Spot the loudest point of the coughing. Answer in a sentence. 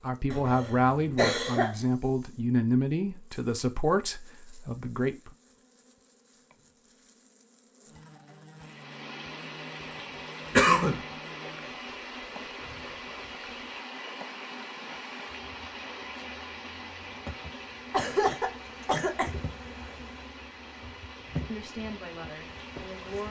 The volume of the coughing peaks at 11 seconds.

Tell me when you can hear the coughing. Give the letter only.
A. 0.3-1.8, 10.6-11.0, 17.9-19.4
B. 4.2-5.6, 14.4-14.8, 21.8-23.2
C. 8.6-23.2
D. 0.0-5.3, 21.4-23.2
A.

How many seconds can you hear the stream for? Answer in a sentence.
The stream can be heard for 15 seconds in total.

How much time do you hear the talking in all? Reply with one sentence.
The talking can be heard for 7 seconds in total.